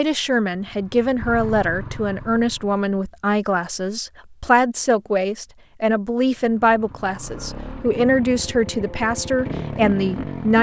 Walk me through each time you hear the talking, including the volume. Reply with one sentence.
The talking can be heard from 0.0 to 10.5 s, at a steady volume.